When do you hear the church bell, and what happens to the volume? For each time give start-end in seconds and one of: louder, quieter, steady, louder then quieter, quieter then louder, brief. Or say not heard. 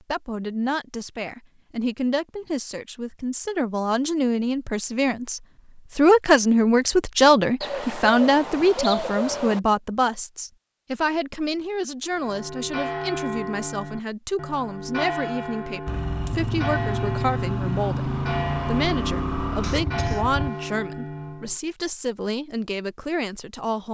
12.1-21.6 steady.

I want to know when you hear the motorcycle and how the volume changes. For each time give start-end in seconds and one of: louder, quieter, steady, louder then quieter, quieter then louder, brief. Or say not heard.
15.8-20.5 steady.